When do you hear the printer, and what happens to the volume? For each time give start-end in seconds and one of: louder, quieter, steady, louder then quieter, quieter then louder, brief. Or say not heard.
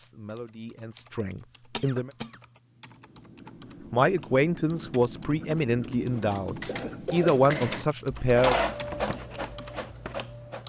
6.1-10.6 louder then quieter.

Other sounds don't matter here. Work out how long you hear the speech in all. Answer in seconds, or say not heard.
7 s.